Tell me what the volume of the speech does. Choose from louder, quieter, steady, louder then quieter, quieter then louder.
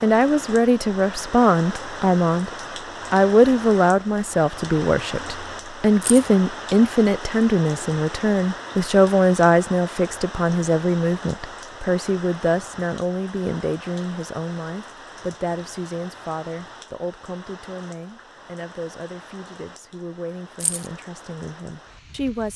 quieter.